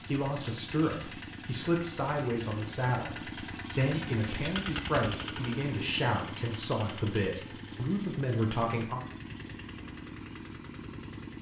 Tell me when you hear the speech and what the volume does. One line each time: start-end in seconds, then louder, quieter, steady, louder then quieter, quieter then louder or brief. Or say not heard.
0.0-9.0 steady.